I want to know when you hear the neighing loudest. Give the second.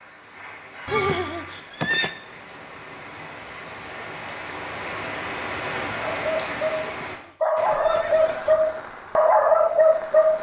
1 s.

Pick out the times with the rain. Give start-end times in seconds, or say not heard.
0.0-10.3.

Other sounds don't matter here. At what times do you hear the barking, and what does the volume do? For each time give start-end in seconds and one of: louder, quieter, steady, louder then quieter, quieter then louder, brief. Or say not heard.
6.0-10.3 louder.